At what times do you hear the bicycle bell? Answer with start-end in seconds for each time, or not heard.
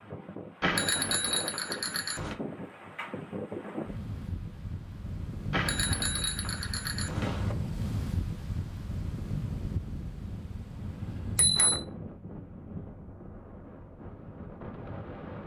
0.6-2.4, 5.5-7.5, 11.2-11.8.